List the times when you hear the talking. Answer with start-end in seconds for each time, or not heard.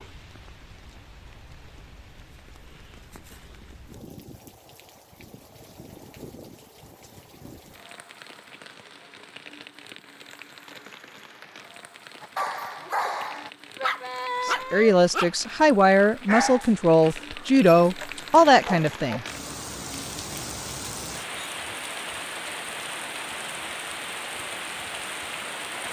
14.4-19.2.